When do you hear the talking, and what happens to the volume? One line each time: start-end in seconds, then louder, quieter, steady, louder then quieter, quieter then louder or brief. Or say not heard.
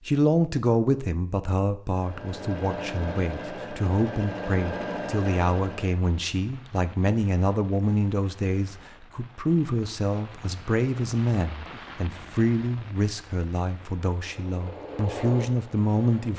0.0-16.3 steady.